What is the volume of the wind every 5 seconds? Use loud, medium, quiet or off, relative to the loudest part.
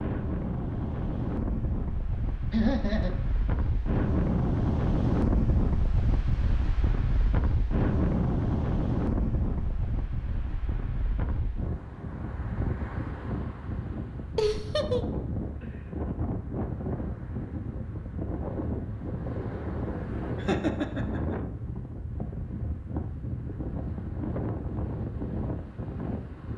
loud, loud, medium, medium, medium, medium.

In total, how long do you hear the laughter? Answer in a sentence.
You can hear the laughter for 2 seconds altogether.